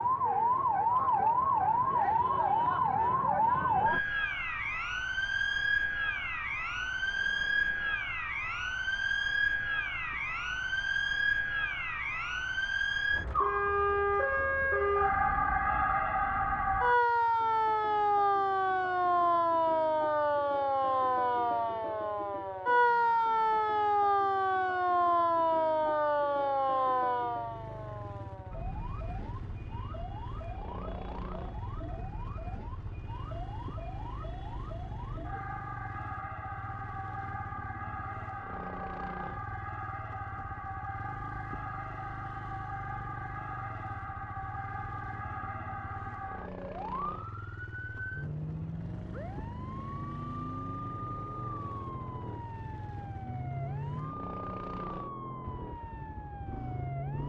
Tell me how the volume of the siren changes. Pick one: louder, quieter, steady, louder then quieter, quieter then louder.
quieter.